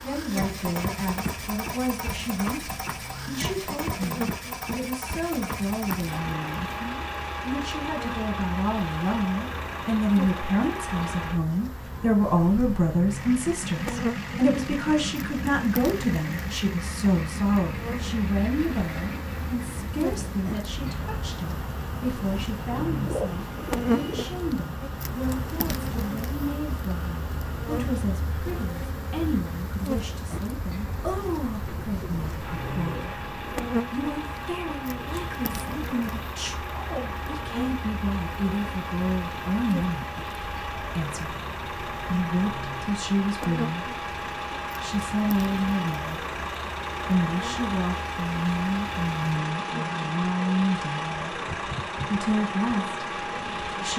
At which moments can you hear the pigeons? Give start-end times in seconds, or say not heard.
22.7-24.4, 31.6-33.7.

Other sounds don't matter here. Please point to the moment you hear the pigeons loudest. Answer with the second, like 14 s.
23 s.